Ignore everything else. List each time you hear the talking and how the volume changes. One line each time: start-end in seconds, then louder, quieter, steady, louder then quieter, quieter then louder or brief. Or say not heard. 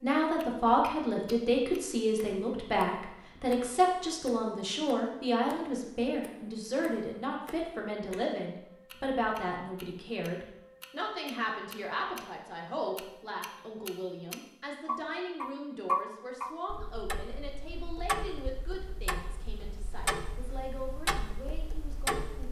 0.0-22.4 quieter.